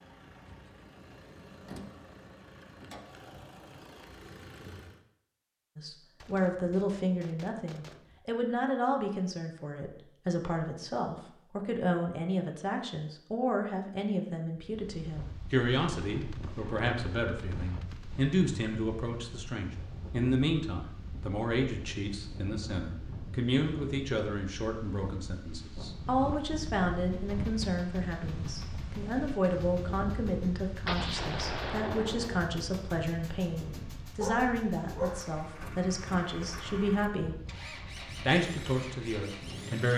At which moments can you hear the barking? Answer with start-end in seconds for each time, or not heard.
34.1-35.8.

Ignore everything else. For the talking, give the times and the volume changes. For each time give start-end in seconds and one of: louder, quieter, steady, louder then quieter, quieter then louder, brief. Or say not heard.
5.8-39.9 steady.